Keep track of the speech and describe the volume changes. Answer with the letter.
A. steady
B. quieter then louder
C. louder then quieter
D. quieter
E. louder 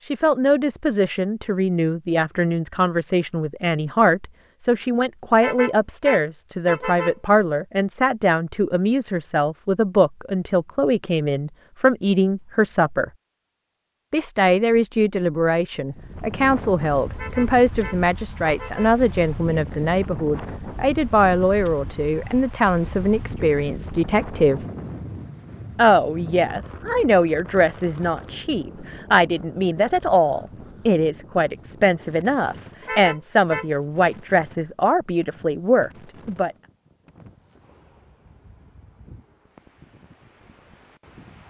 A.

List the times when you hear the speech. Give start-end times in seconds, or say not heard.
0.1-13.1, 14.1-24.6, 25.8-36.5.